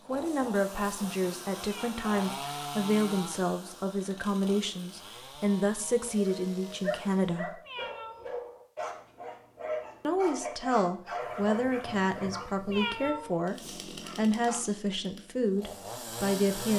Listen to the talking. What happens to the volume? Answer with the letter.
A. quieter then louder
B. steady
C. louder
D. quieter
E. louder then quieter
B.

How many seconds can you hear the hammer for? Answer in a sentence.
The hammer can't be heard in this clip.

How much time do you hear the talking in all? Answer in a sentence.
The talking can be heard for 14 seconds in total.